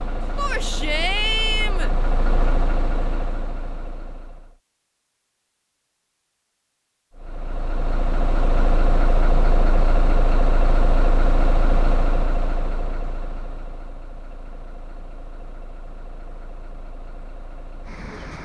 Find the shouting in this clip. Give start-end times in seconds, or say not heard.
0.3-1.9.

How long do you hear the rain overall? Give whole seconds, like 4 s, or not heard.
not heard.